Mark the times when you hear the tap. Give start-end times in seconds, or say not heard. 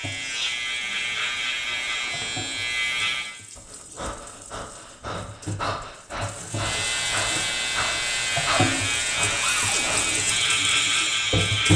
0.0-11.7.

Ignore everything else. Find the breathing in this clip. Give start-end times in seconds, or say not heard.
3.5-10.2.